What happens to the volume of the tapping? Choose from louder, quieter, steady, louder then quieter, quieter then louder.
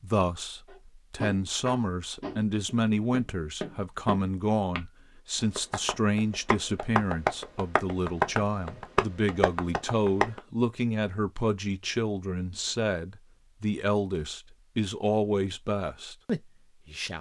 louder.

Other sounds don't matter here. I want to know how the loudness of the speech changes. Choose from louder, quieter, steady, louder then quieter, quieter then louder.
steady.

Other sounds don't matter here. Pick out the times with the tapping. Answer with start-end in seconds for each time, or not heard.
0.7-10.4.